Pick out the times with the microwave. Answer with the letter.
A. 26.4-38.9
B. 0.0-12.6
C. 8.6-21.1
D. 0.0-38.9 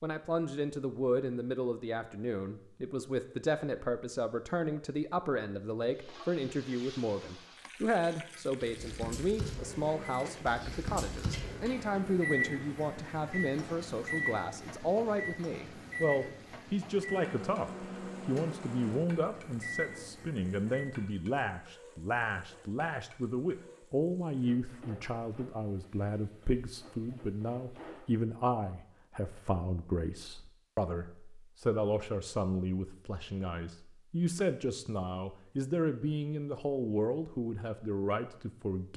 C.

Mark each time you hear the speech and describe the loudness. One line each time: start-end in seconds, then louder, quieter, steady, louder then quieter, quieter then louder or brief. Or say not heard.
0.0-38.9 steady.